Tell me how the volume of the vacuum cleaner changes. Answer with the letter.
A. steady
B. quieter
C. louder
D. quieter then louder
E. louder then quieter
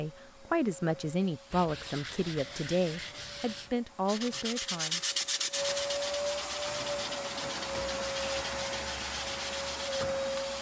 C.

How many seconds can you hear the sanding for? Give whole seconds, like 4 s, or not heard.
9 s.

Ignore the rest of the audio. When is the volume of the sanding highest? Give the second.
5 s.